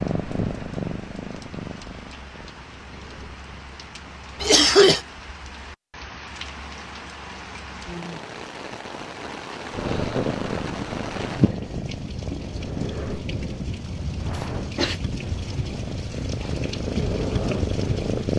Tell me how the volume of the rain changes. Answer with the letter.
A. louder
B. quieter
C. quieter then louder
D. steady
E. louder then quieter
A.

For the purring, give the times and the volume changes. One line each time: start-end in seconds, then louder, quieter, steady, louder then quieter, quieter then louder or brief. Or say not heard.
0.0-4.6 quieter
9.7-18.3 quieter then louder.